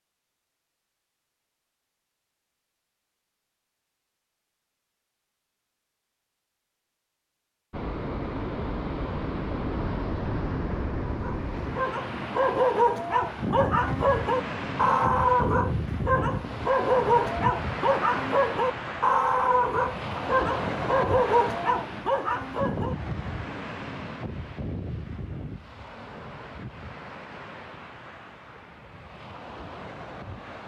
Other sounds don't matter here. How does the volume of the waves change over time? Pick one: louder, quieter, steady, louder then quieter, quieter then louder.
quieter.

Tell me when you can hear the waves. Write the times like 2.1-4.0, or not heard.
7.7-30.6.